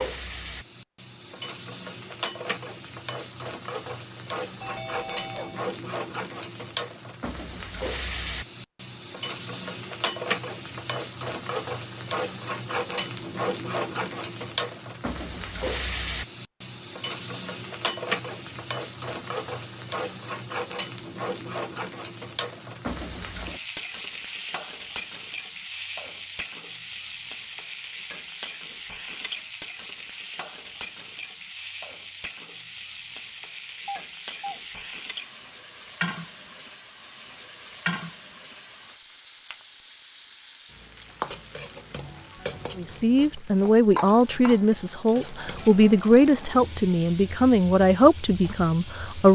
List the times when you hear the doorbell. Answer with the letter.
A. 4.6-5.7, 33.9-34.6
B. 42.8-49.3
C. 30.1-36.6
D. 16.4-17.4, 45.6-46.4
A.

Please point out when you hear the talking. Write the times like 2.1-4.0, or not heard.
42.8-49.3.